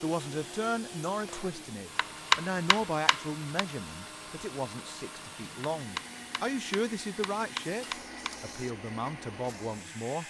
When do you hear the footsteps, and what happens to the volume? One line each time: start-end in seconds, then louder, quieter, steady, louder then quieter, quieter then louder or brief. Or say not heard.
not heard.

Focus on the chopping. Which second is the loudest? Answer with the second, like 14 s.
2 s.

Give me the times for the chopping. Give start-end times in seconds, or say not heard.
1.9-3.6, 5.6-8.4.